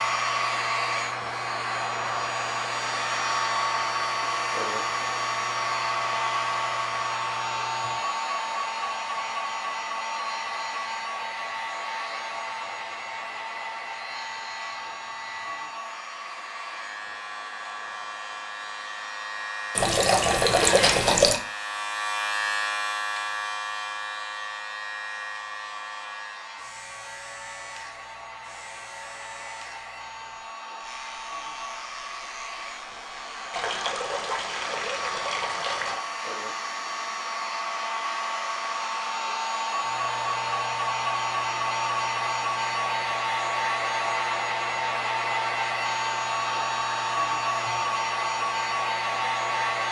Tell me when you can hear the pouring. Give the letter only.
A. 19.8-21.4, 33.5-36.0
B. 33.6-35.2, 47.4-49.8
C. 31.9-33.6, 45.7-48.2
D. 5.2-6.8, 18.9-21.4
A.